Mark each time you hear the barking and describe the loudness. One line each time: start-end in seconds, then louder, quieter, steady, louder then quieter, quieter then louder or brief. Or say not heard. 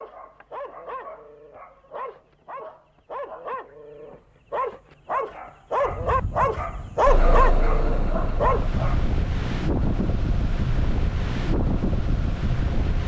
0.0-9.1 louder.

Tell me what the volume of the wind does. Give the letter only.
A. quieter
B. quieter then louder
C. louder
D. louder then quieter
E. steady
C.